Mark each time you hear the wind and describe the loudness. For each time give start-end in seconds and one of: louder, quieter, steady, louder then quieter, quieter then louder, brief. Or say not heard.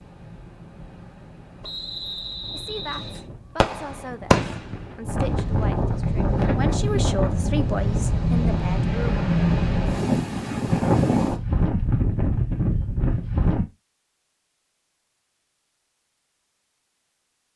0.0-13.7 louder.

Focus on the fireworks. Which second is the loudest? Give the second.
4 s.